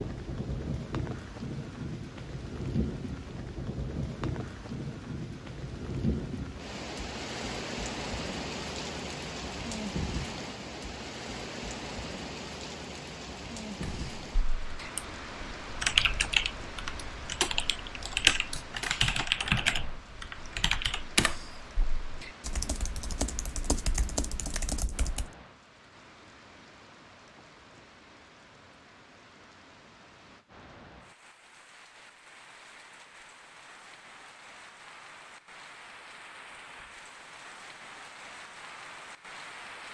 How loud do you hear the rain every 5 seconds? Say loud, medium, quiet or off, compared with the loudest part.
loud, loud, loud, medium, quiet, quiet, quiet, medium.